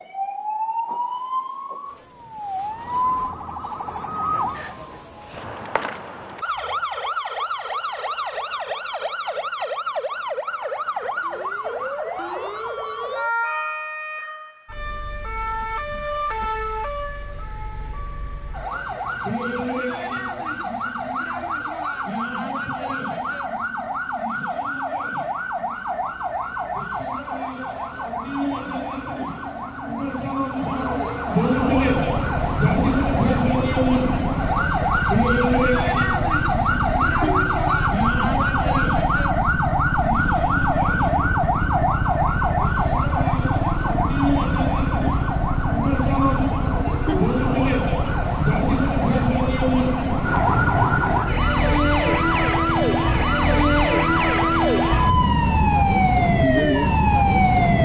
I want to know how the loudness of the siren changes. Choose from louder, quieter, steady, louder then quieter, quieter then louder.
louder.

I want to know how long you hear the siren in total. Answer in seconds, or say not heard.
58 s.